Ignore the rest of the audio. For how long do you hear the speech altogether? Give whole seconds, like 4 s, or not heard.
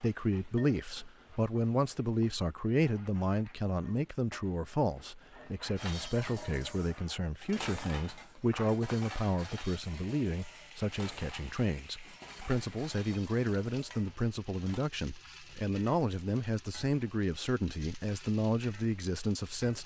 20 s.